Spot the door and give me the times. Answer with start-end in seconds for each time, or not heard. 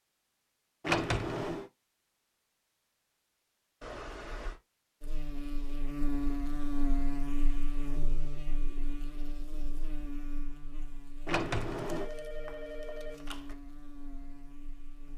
0.8-1.6, 11.2-12.1.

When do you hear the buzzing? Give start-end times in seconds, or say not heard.
5.0-15.1.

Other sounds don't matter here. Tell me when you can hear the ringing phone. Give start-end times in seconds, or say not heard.
3.8-4.6, 11.8-13.6.